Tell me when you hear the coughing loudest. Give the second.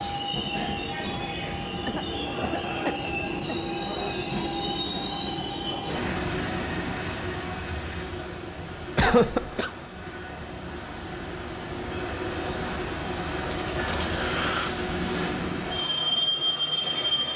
9 s.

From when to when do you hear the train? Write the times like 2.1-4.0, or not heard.
0.0-17.3.